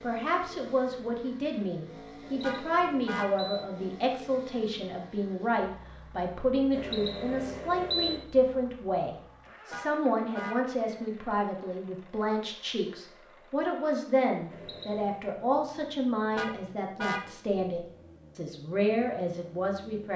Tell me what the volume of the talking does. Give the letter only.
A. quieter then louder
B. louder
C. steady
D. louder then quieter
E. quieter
C.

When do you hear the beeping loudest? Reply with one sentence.
The volume of the beeping peaks at 8 seconds.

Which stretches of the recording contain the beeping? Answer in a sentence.
You can hear the beeping from 2.2 to 3.6 s, from 6.7 to 8.2 s and from 14.5 to 15.2 s.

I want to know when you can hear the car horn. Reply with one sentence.
The car horn can be heard from 2.4 to 3.4 s, from 9.7 to 11.1 s and from 16.4 to 17.8 s.